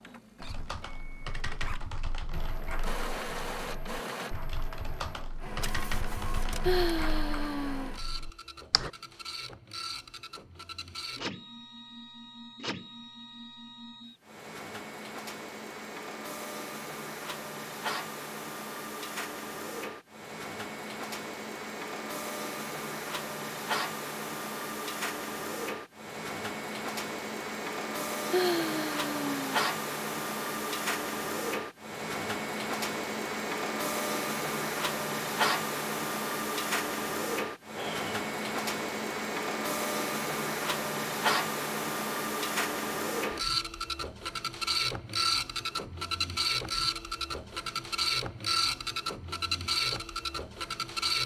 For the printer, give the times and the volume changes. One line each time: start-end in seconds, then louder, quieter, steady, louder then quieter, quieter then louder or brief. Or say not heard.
0.0-51.2 louder.